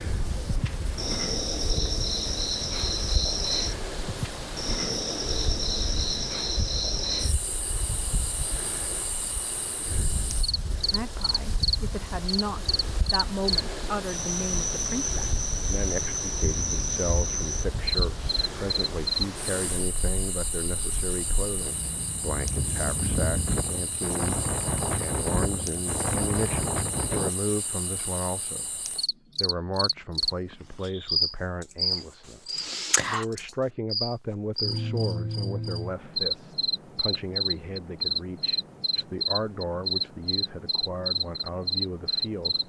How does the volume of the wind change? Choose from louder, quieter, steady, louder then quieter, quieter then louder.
louder.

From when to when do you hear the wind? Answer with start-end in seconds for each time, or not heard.
0.0-27.3.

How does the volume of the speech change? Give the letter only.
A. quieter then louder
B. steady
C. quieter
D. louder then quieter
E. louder
B.